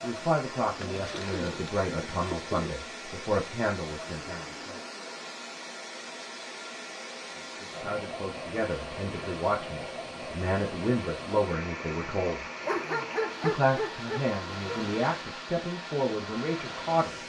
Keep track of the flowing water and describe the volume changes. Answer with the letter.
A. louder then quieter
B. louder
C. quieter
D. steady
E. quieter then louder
D.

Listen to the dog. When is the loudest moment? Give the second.
13 s.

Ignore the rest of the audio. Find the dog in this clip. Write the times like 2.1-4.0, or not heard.
12.7-14.9.